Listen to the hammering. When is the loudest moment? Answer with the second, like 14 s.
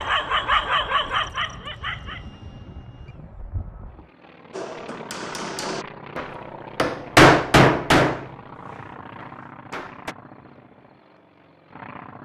7 s.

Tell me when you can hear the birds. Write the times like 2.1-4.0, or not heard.
not heard.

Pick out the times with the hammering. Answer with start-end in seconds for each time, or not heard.
4.5-10.2.